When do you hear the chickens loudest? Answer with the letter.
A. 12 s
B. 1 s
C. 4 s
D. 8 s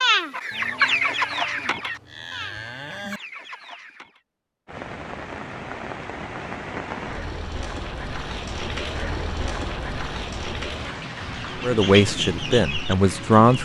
B.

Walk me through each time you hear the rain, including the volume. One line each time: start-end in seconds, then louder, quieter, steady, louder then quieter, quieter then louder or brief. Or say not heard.
4.7-13.6 steady.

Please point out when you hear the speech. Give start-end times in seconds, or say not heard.
11.6-13.6.